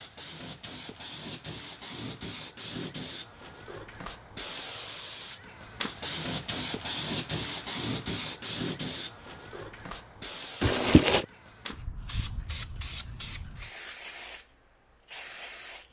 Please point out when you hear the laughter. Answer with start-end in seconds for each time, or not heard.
not heard.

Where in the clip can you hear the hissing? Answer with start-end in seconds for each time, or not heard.
0.0-15.8.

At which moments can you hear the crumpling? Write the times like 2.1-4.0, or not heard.
10.6-11.2.